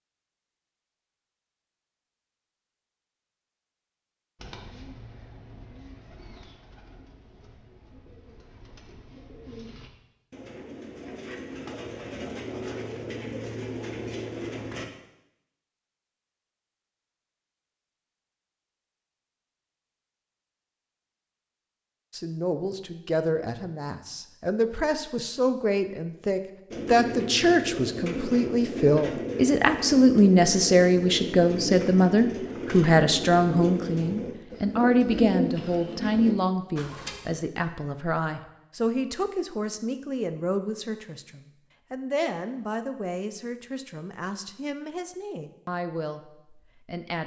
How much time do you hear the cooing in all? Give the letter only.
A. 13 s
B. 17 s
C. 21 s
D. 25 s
C.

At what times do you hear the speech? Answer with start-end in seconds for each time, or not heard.
22.1-47.2.